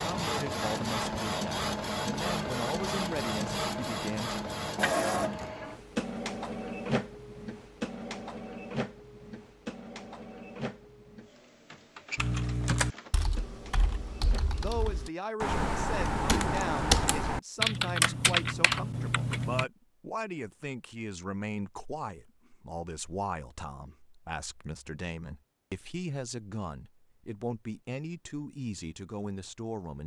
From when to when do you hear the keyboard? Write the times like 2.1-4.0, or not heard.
12.2-19.6.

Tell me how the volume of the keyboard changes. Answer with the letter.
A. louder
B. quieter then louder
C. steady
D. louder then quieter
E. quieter
B.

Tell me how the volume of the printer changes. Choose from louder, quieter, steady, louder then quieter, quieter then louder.
quieter.